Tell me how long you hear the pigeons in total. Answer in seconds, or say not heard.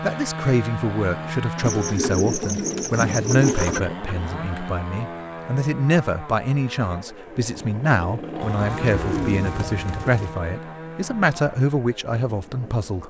4 s.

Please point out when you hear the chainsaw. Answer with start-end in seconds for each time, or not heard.
0.0-13.0.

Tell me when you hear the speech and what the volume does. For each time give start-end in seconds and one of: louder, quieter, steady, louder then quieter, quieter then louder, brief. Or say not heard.
0.0-13.0 steady.